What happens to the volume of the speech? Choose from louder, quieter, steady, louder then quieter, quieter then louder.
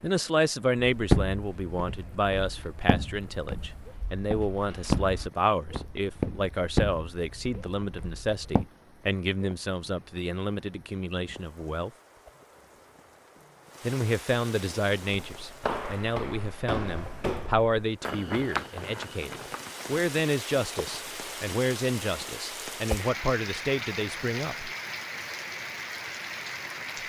steady.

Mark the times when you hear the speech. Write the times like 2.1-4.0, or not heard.
0.0-11.9, 13.8-24.7.